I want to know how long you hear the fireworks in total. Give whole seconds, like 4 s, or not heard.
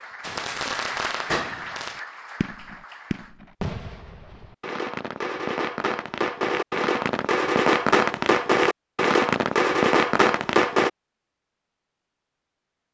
11 s.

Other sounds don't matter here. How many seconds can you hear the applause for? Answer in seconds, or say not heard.
3 s.